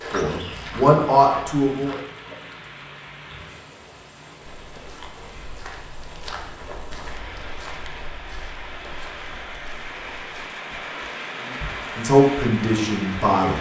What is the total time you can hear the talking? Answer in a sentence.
You can hear the talking for 4 seconds altogether.